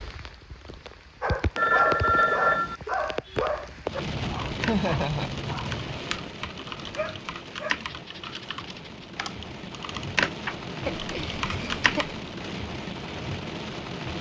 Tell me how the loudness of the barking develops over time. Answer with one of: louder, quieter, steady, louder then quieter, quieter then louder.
quieter.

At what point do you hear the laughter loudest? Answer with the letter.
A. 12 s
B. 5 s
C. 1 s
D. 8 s
B.